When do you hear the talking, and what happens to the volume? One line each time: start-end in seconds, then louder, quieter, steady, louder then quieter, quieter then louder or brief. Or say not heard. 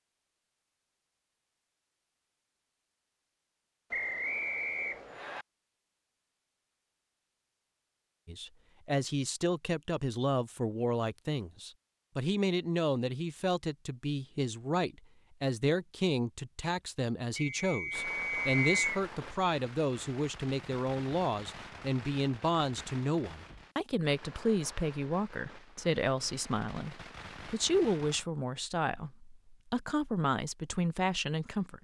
8.2-31.7 steady.